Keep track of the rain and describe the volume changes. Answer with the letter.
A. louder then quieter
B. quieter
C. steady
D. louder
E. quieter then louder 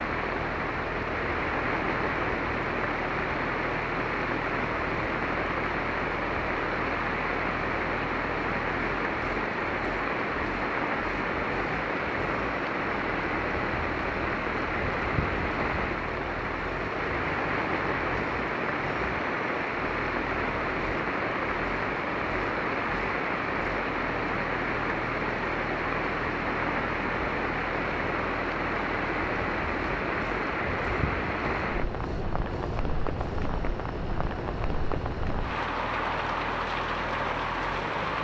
C.